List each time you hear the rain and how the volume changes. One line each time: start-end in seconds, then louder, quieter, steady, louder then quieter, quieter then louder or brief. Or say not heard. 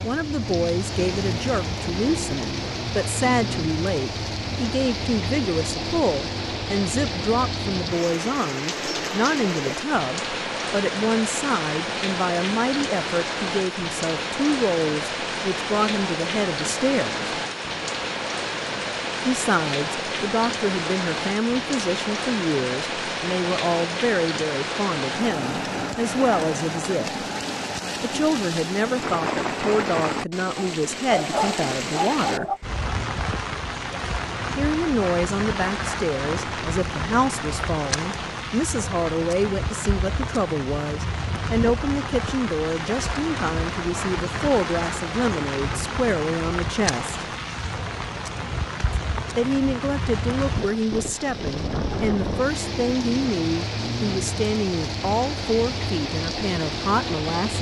0.0-57.5 steady.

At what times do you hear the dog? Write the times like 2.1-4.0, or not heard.
30.6-32.6.